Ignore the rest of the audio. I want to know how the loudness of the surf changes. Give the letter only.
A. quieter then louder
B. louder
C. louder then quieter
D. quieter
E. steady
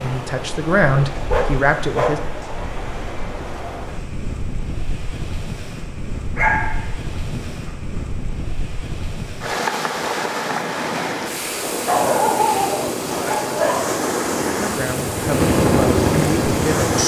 B.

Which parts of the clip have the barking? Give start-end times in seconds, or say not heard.
1.2-2.5, 6.3-8.1, 11.8-14.1.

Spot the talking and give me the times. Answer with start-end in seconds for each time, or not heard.
0.0-2.2, 14.6-16.9.